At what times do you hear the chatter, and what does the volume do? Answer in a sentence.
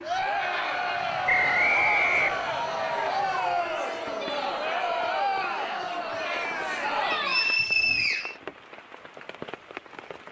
The chatter can be heard from 0.0 to 8.1 s, at a steady volume.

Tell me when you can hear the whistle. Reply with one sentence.
The whistle can be heard from 1.2 to 2.6 s and from 7.1 to 8.3 s.